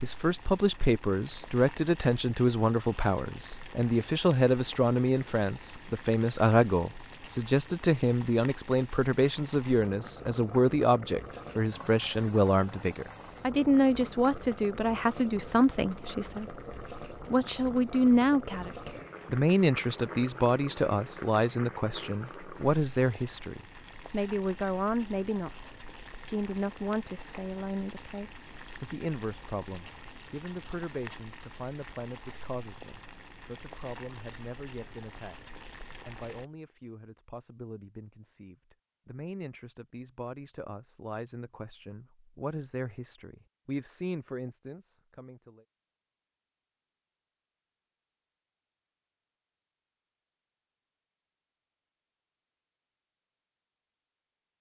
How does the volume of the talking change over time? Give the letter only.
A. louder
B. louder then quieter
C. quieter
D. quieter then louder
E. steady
C.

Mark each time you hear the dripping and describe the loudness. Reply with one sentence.
The dripping can't be heard in this clip.